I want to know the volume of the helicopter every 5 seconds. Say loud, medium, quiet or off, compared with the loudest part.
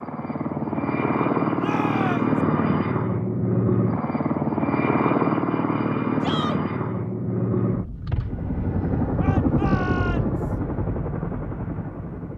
loud, loud, medium.